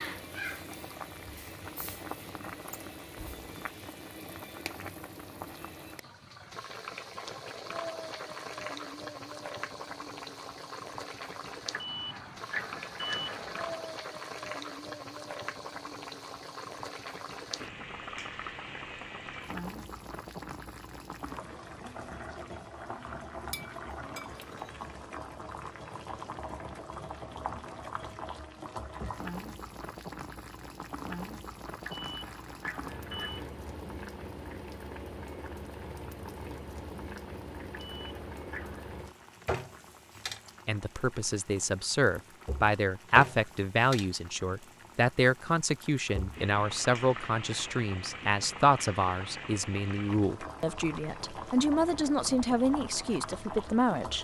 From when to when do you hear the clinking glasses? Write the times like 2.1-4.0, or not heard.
23.5-24.8.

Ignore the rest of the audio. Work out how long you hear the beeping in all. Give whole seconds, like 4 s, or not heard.
5 s.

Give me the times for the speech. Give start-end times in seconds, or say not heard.
40.6-54.2.